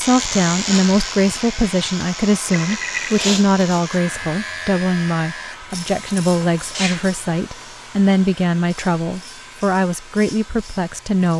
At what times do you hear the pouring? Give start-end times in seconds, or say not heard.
2.5-3.3.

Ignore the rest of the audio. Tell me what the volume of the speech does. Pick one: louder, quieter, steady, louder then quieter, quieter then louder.
steady.